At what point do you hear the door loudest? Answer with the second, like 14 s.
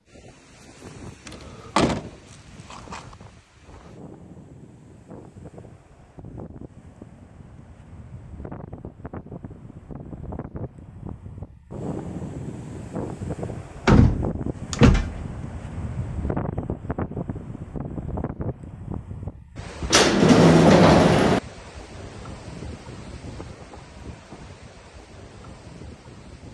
21 s.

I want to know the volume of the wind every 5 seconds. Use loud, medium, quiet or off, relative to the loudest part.
quiet, medium, loud, loud, medium, medium.